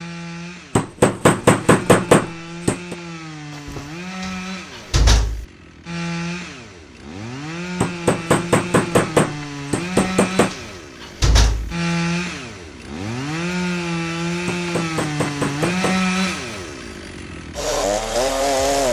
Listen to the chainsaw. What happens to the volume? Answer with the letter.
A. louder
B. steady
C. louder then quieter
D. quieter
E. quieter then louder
A.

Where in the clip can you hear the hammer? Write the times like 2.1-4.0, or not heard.
0.8-3.0, 7.8-10.6, 14.4-16.1.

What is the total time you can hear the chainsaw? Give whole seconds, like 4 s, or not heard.
19 s.